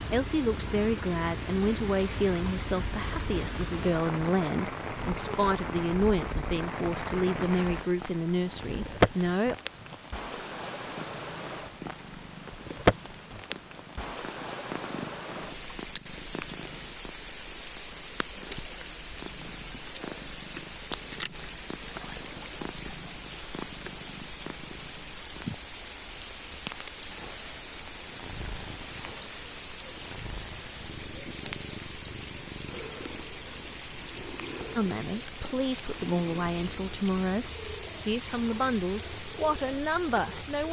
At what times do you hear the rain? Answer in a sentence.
The rain can be heard from 0.0 to 40.6 s.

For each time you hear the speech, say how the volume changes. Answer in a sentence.
You can hear the speech from 0.1 to 9.6 s, at a steady volume; and from 34.8 to 40.6 s, at a steady volume.